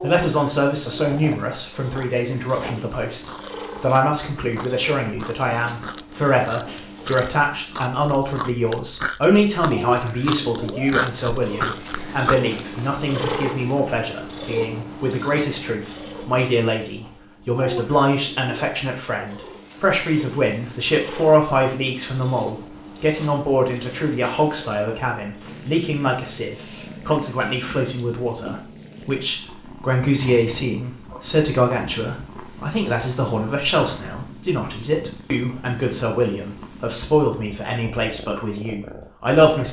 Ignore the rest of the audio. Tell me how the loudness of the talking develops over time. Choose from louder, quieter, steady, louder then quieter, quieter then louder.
steady.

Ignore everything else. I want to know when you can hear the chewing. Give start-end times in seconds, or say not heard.
1.0-12.6.